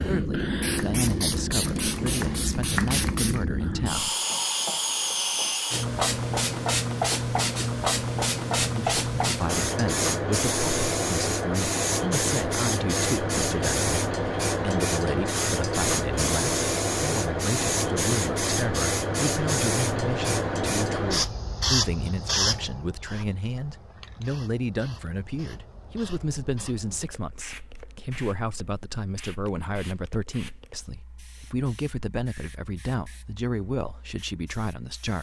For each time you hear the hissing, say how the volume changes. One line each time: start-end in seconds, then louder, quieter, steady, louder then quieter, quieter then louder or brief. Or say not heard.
0.0-35.1 quieter.